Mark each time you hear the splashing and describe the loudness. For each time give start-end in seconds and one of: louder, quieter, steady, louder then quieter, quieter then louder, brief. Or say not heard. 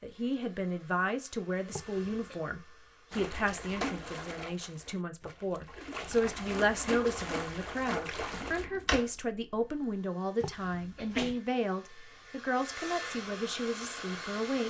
3.1-8.7 quieter then louder.